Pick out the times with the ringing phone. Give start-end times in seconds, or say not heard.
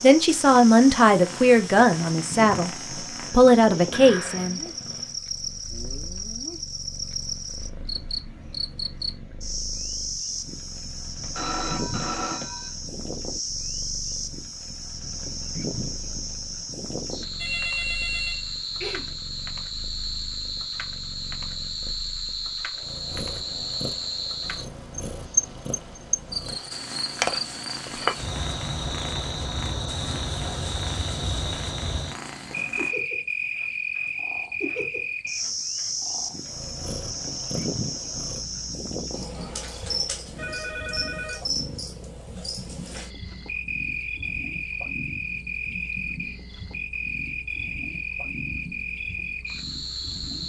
11.2-12.7, 17.4-19.1, 40.4-41.4.